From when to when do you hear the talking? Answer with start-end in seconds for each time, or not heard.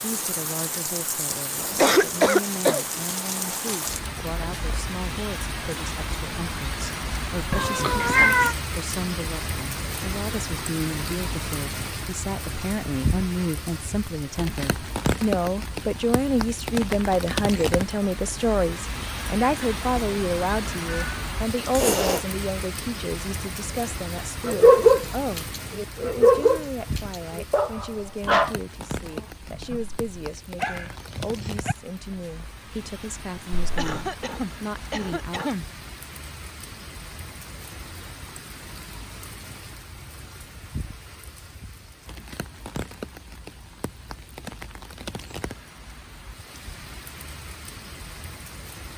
0.0-35.5.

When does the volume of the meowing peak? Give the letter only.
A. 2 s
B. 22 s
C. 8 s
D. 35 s
C.